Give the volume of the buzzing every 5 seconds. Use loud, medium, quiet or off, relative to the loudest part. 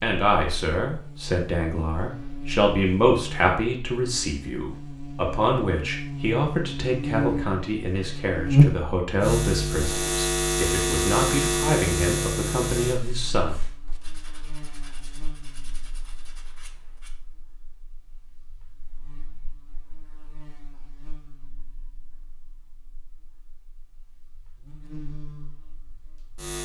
quiet, loud, loud, quiet, quiet, quiet.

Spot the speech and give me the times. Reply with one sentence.
The speech can be heard from 0.0 to 13.6 s.